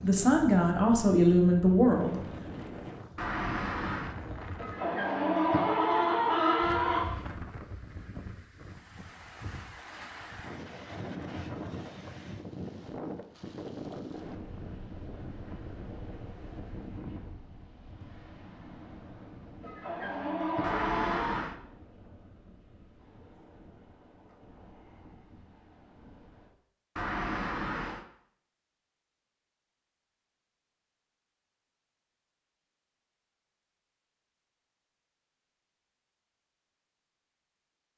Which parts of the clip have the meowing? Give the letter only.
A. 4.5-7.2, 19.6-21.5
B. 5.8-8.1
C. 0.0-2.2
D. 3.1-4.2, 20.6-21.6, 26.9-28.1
D.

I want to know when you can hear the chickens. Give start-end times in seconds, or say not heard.
4.5-7.2, 19.6-21.5.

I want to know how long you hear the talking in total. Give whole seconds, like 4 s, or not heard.
2 s.